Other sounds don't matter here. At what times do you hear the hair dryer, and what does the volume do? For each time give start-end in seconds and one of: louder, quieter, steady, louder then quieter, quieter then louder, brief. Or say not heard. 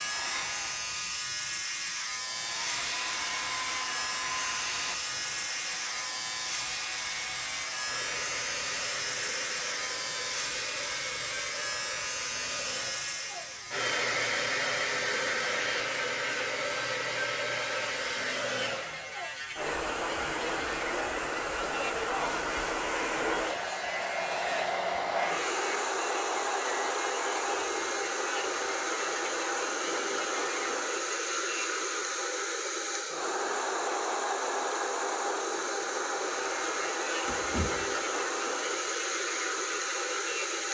0.0-40.6 louder.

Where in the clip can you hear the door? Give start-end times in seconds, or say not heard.
37.2-37.9.